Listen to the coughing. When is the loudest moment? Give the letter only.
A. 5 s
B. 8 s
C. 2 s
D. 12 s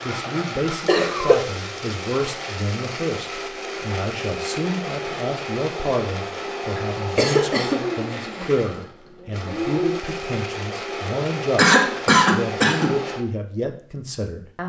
D.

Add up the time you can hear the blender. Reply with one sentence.
The blender can be heard for 13 seconds in total.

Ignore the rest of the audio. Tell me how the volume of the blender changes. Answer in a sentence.
The loudness of the blender stays about the same.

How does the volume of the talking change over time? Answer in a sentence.
The loudness of the talking stays about the same.